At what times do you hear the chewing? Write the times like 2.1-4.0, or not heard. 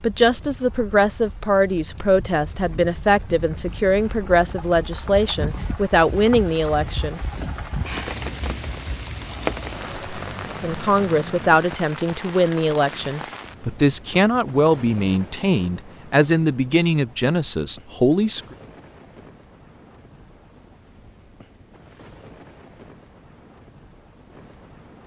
not heard.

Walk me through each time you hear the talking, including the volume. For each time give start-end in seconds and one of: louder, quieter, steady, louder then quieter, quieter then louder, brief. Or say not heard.
0.0-7.2 steady
10.6-18.4 steady.